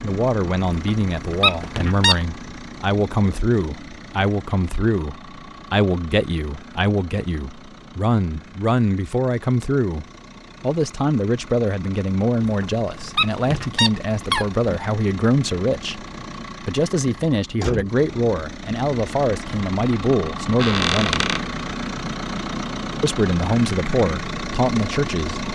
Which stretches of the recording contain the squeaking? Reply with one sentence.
You can hear the squeaking from 0.7 to 2.1 s, from 12.4 to 14.7 s and from 20.6 to 21.4 s.